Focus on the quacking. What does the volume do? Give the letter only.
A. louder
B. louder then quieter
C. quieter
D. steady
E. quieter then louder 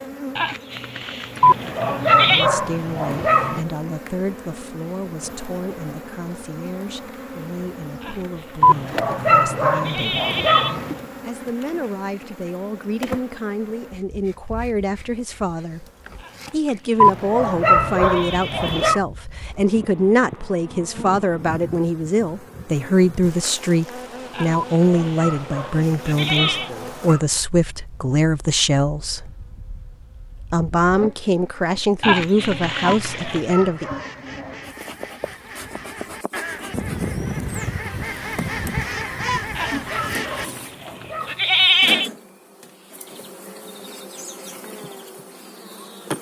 A.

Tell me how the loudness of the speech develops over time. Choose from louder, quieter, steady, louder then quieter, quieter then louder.
louder.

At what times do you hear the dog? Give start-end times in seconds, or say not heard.
1.4-3.6, 8.6-10.9, 17.0-19.0, 24.5-27.2, 33.1-34.6, 39.2-41.4.